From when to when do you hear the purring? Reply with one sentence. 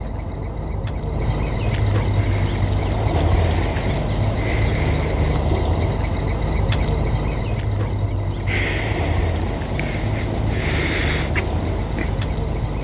The purring can be heard from 2.1 to 5.4 s and from 8.4 to 12.7 s.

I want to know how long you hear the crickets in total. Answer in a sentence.
The crickets can be heard for 13 seconds in total.